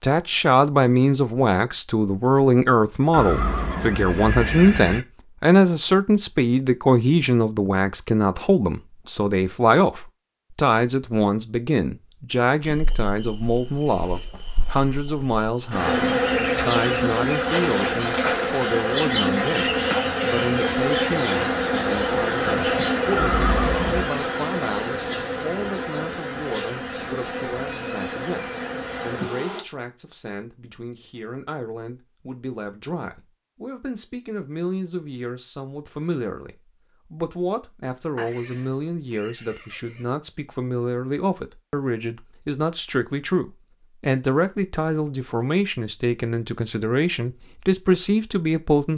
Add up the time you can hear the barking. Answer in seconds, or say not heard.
not heard.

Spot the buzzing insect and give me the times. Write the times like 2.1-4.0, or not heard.
12.6-29.6.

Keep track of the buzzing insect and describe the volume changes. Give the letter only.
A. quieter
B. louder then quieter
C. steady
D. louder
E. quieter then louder
B.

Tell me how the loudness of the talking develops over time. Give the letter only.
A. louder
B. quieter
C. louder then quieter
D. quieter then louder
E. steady
D.